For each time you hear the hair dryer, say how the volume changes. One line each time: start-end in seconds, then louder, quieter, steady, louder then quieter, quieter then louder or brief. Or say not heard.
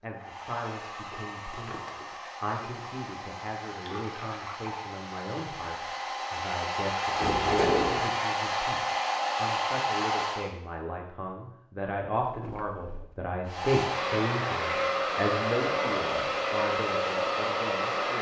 0.0-10.5 louder
13.4-18.1 steady.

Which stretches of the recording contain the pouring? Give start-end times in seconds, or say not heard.
3.8-4.8.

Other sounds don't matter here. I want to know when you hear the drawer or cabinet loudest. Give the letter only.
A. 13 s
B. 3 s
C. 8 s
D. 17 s
C.